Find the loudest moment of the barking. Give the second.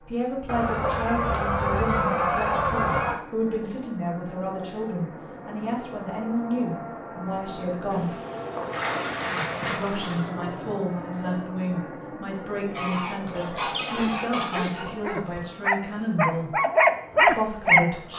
17 s.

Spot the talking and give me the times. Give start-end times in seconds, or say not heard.
0.0-8.2, 9.7-16.6, 17.2-18.1.